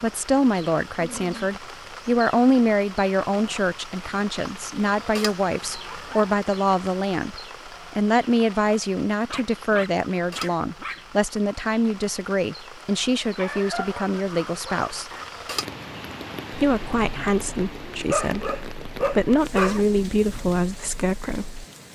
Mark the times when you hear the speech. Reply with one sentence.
The speech can be heard from 0.0 to 15.1 s and from 16.5 to 21.6 s.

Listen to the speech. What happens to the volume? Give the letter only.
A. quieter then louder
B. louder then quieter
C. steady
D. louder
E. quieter
C.